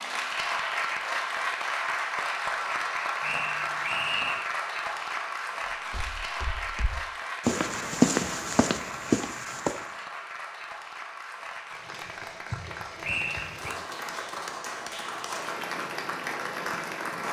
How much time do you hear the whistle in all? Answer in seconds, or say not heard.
2 s.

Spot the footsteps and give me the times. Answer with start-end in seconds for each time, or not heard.
5.9-9.9.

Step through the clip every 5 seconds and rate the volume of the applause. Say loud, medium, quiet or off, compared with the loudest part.
loud, medium, medium, loud.